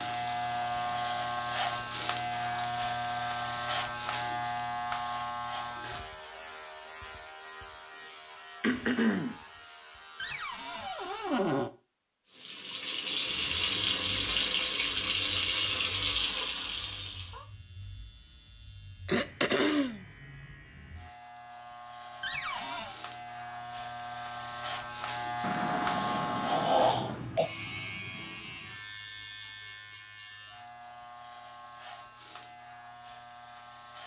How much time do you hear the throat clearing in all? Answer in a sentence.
The throat clearing can be heard for 4 seconds in total.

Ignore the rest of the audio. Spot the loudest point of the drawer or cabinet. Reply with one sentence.
The loudest moment of the drawer or cabinet is at 11 seconds.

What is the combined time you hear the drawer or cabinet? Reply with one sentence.
The drawer or cabinet can be heard for 2 seconds in total.